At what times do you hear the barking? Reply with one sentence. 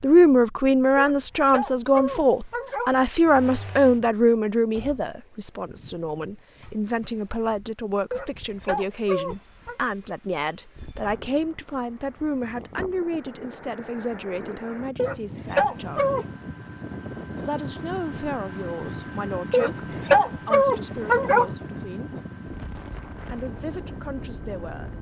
You can hear the barking from 0.9 to 2.9 s, from 8.1 to 9.8 s, from 14.9 to 16.2 s and from 19.5 to 21.5 s.